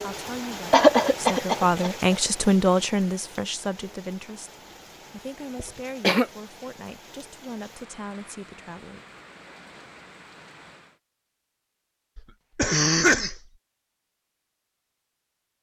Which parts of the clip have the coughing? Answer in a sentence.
You can hear the coughing from 0.7 to 1.9 s, from 5.5 to 6.2 s and from 12.2 to 13.4 s.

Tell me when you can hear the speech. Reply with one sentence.
You can hear the speech from 0.0 to 9.0 s.